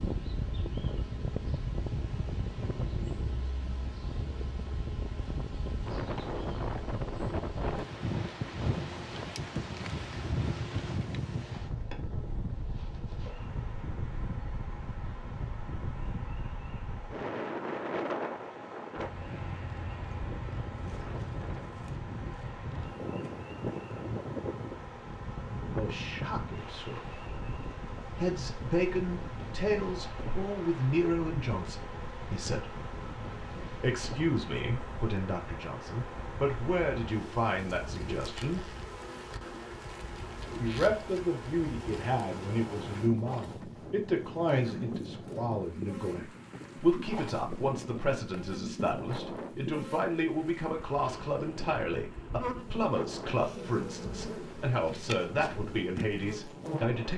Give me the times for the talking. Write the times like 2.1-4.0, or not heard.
25.6-27.1, 28.1-32.7, 33.8-38.7, 40.6-57.1.